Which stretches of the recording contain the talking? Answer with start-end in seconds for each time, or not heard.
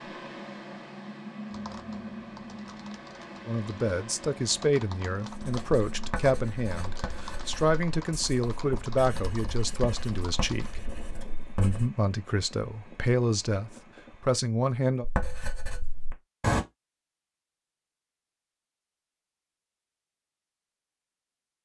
3.5-10.8, 11.6-15.1.